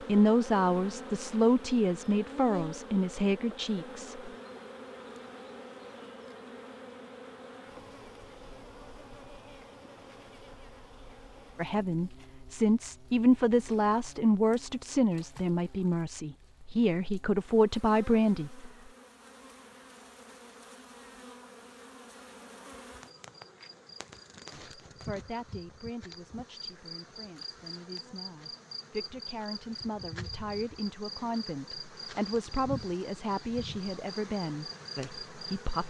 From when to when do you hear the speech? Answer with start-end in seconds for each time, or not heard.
0.1-4.3, 11.6-18.7, 24.5-35.8.